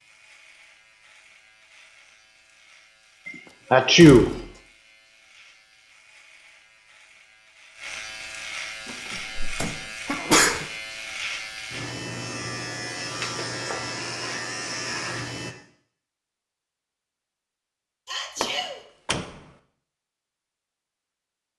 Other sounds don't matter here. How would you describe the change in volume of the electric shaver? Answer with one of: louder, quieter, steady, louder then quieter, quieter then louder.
louder.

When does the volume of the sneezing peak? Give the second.
4 s.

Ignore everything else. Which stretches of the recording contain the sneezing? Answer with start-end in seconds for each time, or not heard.
3.7-4.2, 9.2-10.7, 18.1-18.8.